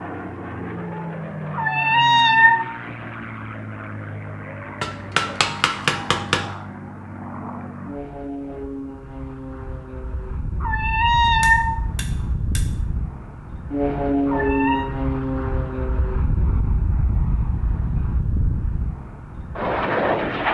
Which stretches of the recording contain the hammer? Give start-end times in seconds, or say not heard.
4.8-6.5, 11.2-12.8.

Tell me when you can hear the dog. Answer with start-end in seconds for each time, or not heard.
not heard.